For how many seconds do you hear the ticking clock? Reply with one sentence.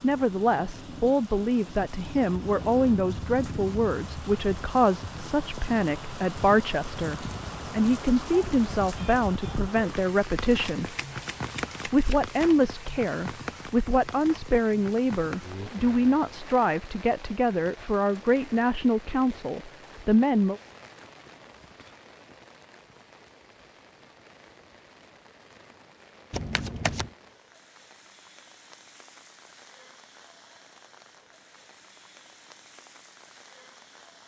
The ticking clock can't be heard in this clip.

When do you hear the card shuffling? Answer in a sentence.
You can hear the card shuffling from 10.8 to 12.5 s and from 26.3 to 27.1 s.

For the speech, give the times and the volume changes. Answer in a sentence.
The speech can be heard from 0.0 to 10.9 s, at a steady volume; and from 11.8 to 20.6 s, at a steady volume.